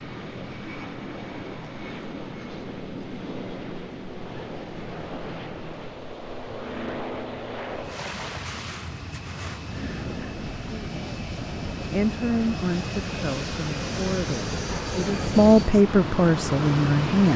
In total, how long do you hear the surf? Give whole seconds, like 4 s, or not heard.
17 s.